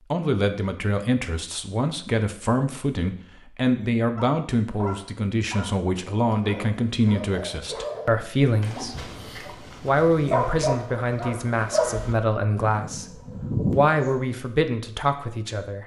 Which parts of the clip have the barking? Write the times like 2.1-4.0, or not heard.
4.2-14.2.